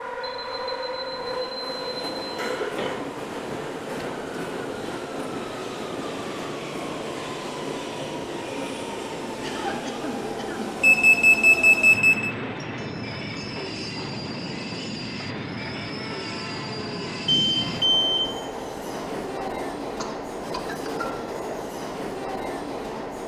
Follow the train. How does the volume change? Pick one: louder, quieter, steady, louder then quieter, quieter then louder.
steady.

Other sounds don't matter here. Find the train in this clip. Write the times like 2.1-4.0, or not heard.
0.0-23.2.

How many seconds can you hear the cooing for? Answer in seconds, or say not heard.
not heard.